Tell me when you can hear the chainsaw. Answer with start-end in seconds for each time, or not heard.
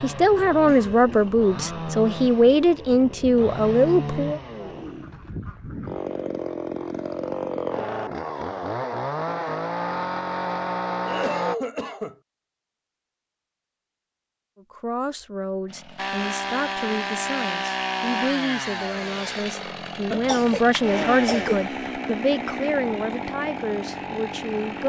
0.0-11.6, 15.7-24.8.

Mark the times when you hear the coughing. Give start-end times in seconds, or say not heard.
0.7-1.8, 11.1-12.2, 20.1-21.6.